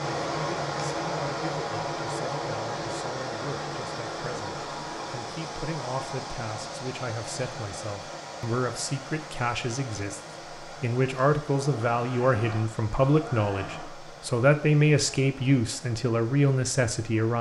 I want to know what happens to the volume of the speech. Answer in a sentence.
The loudness of the speech goes up.